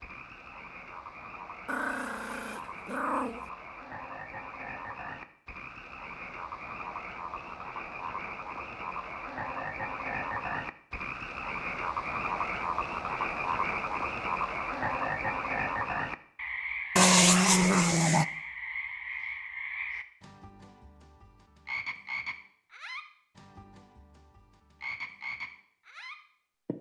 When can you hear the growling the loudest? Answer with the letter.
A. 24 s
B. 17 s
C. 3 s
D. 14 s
B.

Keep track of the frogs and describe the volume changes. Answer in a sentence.
The loudness of the frogs goes up, then down.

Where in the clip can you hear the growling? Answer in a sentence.
You can hear the growling from 1.6 to 3.5 s and from 16.9 to 18.2 s.